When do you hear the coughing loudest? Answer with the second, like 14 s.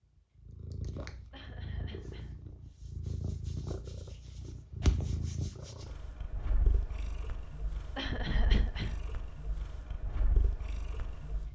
8 s.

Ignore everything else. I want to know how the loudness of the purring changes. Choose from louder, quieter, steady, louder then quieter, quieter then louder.
louder then quieter.